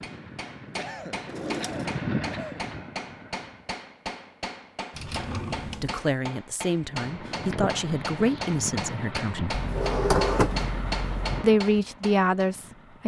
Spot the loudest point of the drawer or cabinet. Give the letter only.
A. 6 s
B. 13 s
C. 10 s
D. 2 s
C.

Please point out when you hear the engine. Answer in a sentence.
The engine can be heard from 0.0 to 3.8 s and from 6.8 to 13.0 s.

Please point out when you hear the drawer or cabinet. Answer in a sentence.
You can hear the drawer or cabinet from 1.2 to 2.0 s, from 4.9 to 6.0 s and from 9.5 to 11.4 s.